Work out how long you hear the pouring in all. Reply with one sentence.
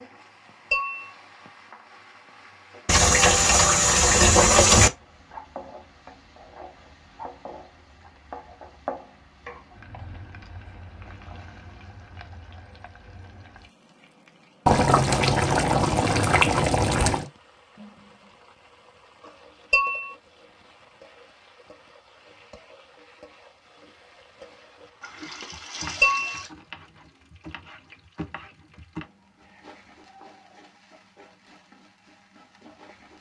You can hear the pouring for 6 seconds altogether.